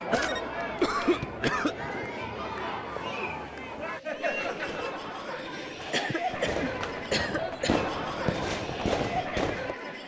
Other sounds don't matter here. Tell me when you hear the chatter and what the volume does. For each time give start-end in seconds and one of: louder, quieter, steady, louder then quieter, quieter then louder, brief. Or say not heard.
0.0-10.0 steady.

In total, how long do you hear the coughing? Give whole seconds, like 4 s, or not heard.
4 s.